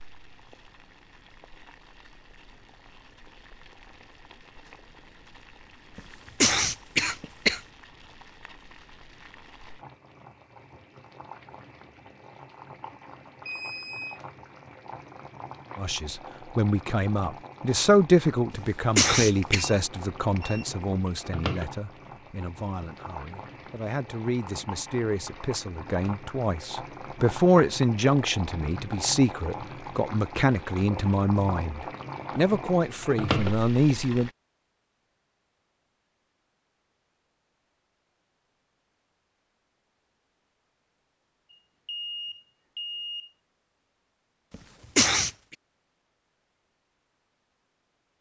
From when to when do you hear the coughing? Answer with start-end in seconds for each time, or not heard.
6.0-7.6, 18.5-19.6, 44.5-45.3.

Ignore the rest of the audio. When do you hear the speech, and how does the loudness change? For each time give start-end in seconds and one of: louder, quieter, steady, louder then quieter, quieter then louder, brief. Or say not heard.
15.8-34.3 quieter then louder.